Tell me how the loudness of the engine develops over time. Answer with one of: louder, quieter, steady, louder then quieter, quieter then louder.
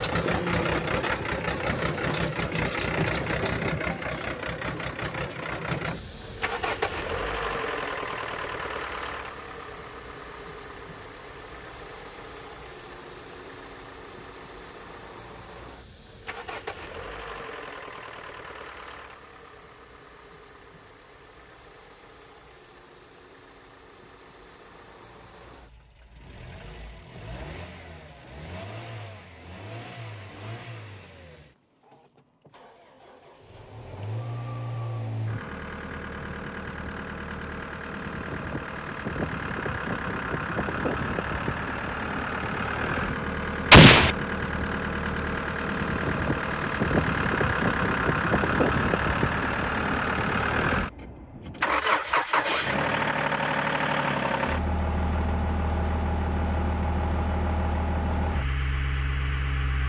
quieter then louder.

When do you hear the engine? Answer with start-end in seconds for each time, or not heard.
0.0-59.8.